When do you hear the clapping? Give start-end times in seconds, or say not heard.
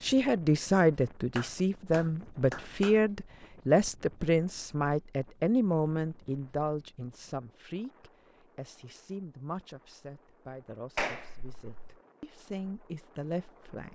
1.4-3.0, 10.9-11.9.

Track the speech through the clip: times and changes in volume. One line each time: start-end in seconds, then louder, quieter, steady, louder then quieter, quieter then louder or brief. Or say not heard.
0.0-13.9 quieter.